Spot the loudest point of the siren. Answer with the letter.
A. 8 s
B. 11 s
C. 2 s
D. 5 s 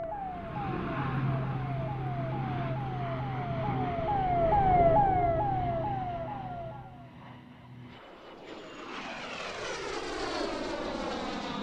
D.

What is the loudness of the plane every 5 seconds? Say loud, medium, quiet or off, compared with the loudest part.
loud, medium, loud.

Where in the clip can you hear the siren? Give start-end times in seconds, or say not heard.
0.0-7.2.